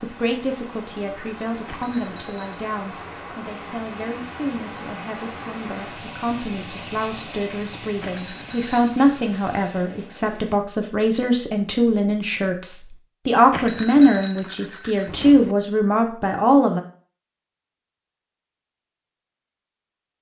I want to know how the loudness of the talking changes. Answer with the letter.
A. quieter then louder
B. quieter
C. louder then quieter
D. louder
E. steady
D.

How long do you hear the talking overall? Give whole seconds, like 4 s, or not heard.
17 s.